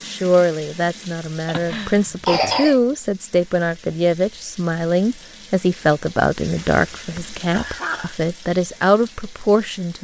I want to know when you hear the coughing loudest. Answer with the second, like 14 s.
2 s.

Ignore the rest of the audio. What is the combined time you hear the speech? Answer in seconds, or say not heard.
10 s.